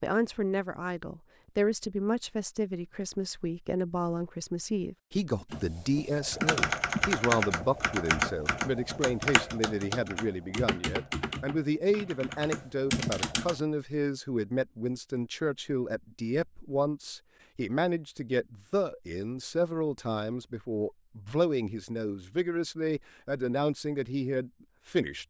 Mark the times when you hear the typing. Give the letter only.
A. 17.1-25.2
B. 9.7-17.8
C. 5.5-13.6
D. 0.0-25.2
C.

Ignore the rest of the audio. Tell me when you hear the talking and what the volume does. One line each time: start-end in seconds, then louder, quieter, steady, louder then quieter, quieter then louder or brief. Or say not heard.
0.0-25.2 steady.